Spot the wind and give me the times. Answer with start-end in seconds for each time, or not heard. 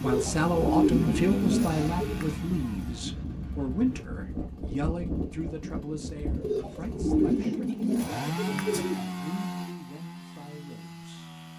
0.0-7.5.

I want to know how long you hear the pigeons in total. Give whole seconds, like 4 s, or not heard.
5 s.